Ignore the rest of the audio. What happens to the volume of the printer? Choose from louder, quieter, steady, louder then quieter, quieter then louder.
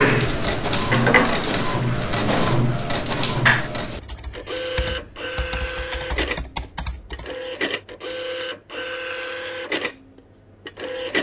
quieter.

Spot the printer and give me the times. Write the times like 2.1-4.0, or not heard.
0.0-11.1.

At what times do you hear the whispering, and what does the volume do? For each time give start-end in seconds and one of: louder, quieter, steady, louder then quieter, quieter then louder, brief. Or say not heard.
not heard.